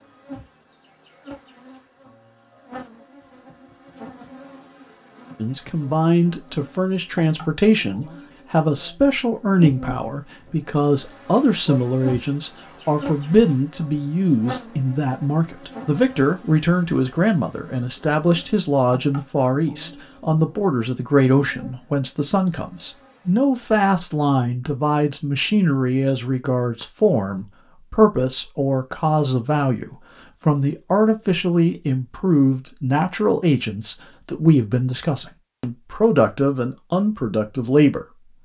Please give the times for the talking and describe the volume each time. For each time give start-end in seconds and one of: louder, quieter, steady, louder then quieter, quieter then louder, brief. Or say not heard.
5.3-38.2 steady.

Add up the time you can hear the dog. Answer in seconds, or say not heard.
not heard.